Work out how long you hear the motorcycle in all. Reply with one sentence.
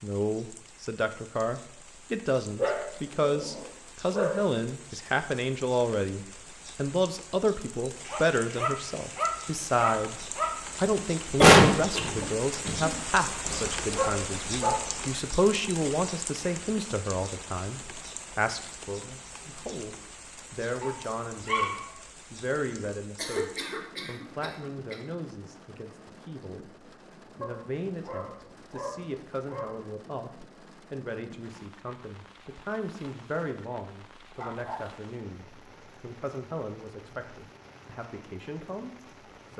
The motorcycle can't be heard in this clip.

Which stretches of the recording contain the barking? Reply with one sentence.
The barking can be heard from 2.5 to 4.5 s, from 8.1 to 10.7 s, from 13.4 to 14.9 s, from 20.8 to 21.9 s, from 27.4 to 29.8 s and from 34.4 to 34.8 s.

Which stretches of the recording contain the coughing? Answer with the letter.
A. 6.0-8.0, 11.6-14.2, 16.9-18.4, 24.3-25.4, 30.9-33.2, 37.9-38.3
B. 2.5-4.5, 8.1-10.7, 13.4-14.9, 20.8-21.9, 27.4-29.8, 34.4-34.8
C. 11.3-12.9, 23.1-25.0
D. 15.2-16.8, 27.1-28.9
C.